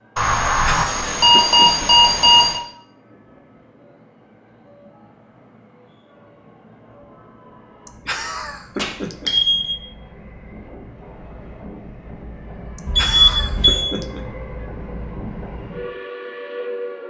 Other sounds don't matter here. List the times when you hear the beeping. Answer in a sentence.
The beeping can be heard from 0.1 to 2.6 s, from 8.8 to 9.8 s and from 12.8 to 13.8 s.